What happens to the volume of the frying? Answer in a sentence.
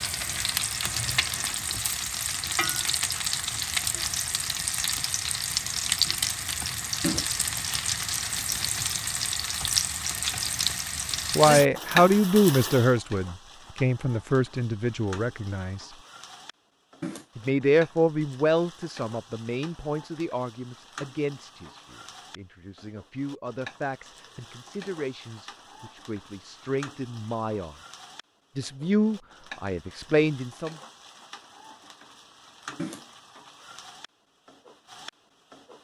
The volume of the frying goes down.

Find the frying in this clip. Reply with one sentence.
You can hear the frying from 0.0 to 35.8 s.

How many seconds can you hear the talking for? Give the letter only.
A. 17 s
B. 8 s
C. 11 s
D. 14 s
A.